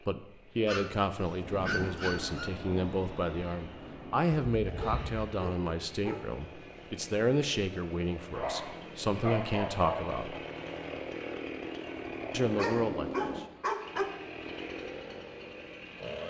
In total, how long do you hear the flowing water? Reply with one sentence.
The flowing water can't be heard in this clip.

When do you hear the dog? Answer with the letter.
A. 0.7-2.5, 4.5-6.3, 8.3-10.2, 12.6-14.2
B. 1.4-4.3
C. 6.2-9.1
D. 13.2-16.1
A.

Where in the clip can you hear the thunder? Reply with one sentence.
The thunder can be heard from 1.4 to 4.3 s.